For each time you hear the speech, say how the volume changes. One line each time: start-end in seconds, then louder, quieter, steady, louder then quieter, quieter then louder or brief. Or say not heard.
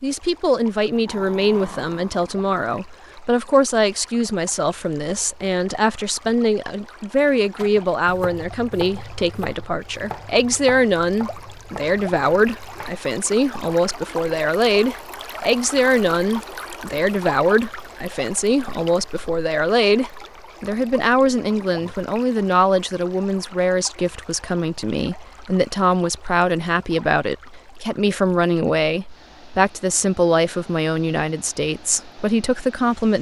0.0-33.1 steady.